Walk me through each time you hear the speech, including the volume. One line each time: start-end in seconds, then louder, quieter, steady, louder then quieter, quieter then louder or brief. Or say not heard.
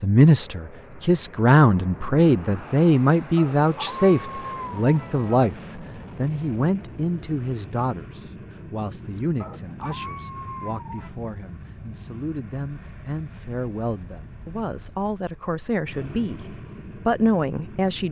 0.0-18.0 quieter then louder.